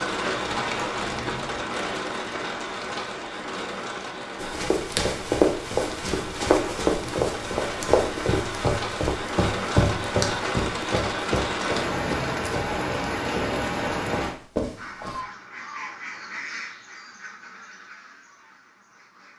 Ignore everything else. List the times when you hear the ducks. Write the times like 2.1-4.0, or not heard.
14.8-19.3.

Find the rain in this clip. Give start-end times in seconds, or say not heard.
0.0-14.3.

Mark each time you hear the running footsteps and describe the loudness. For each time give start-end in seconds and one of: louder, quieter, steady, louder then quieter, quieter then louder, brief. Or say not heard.
4.4-15.2 quieter.